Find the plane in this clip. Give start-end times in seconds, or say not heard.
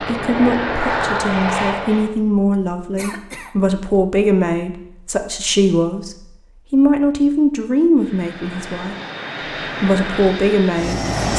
0.0-2.1, 8.0-11.3.